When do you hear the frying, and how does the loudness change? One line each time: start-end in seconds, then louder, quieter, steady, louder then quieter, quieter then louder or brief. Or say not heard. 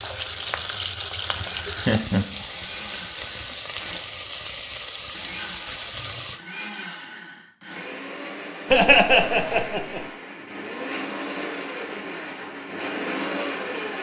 0.0-6.5 steady.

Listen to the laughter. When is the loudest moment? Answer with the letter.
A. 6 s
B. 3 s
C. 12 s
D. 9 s
D.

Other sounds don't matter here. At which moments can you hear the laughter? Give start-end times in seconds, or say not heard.
1.8-2.5, 8.7-10.1.